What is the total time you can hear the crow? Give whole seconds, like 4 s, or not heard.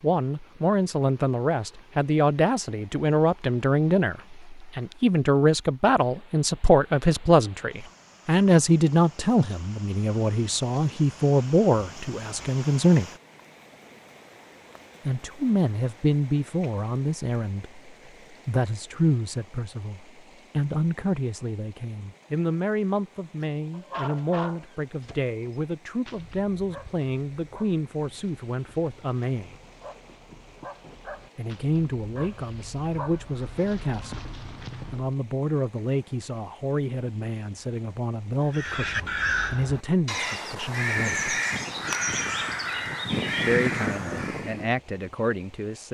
6 s.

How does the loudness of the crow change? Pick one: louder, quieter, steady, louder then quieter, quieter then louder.
steady.